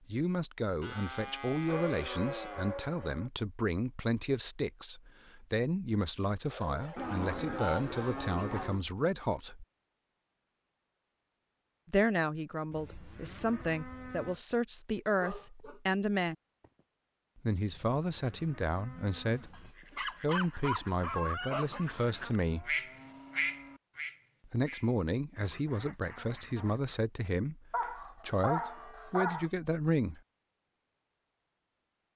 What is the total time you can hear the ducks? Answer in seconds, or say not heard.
7 s.